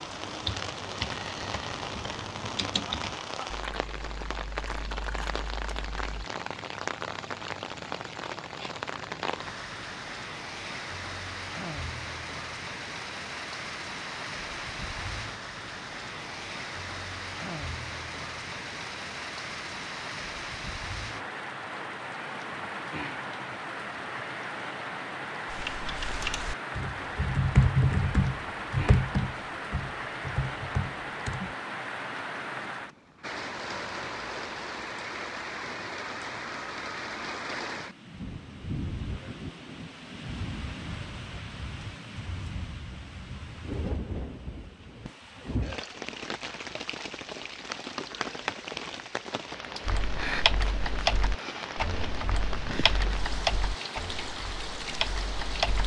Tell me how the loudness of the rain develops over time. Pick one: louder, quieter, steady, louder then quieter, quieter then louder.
steady.